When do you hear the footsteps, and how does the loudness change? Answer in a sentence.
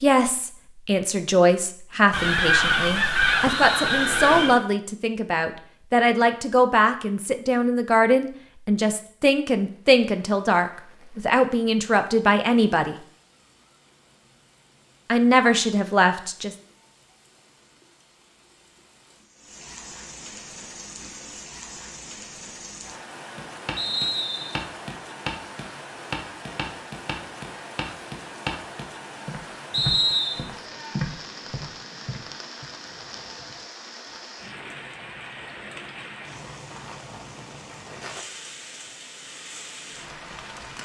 The footsteps can be heard from 23.4 to 32.6 s, at a steady volume.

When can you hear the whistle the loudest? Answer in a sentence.
The loudest moment of the whistle is at 30 seconds.